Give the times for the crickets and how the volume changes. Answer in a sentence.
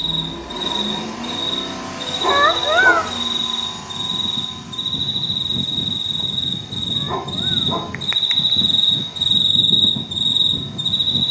The crickets can be heard from 0.0 to 11.2 s, getting louder.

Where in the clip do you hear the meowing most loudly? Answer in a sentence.
The volume of the meowing peaks at 3 seconds.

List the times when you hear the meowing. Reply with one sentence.
You can hear the meowing from 2.3 to 3.1 s and from 7.0 to 8.3 s.